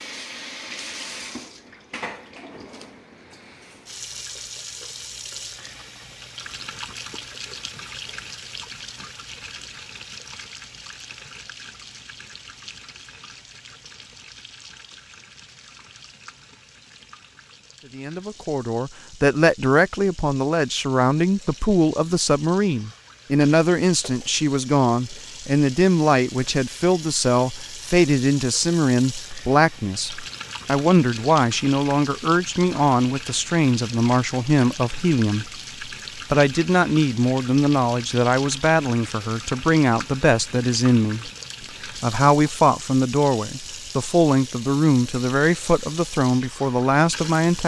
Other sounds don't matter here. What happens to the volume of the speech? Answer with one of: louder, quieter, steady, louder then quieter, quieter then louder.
steady.